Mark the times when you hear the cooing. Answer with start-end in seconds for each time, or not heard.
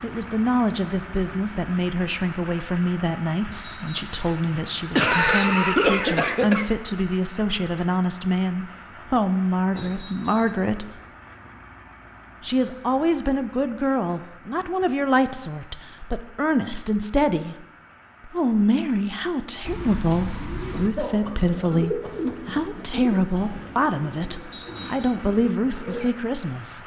19.6-26.1.